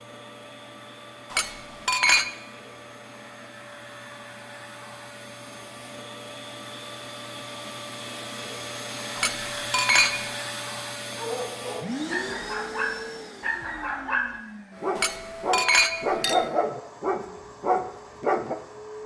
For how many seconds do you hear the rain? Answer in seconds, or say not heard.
not heard.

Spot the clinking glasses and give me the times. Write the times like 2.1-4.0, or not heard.
1.3-2.3, 9.2-10.2, 14.9-16.5.